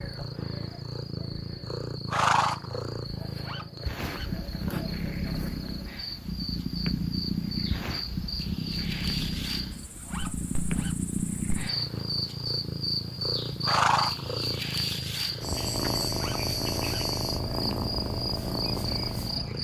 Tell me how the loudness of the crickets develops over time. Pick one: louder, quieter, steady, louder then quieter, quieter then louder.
louder.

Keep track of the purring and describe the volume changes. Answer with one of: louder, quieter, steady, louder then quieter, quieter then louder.
steady.